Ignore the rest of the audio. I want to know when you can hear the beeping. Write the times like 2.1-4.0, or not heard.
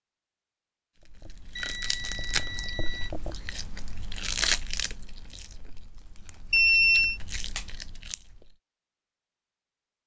1.6-3.1, 6.5-7.2.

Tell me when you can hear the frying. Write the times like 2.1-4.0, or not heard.
not heard.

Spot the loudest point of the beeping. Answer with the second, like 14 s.
7 s.